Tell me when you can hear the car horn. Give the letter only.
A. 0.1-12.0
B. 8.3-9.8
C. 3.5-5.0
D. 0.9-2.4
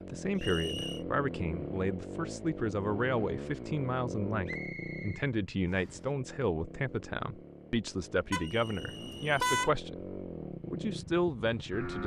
B.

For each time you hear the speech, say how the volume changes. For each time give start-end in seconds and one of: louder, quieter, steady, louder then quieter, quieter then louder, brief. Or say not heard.
0.1-12.0 steady.